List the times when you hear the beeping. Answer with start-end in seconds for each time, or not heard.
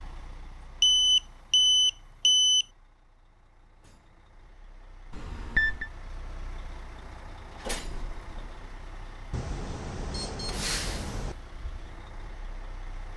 0.8-2.6, 5.1-5.9, 9.3-11.3.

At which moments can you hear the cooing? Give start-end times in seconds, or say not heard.
not heard.